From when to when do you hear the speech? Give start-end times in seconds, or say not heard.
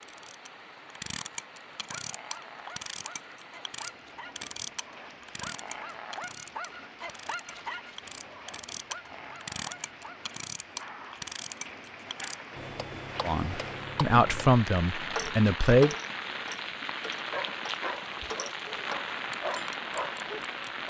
13.2-15.9.